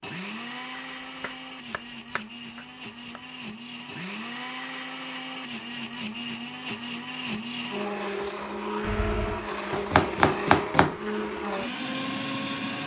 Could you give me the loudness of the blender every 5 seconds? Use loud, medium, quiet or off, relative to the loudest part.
medium, loud, loud.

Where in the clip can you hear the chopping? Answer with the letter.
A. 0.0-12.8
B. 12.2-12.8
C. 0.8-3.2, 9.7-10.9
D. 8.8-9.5
C.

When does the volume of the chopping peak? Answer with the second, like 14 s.
10 s.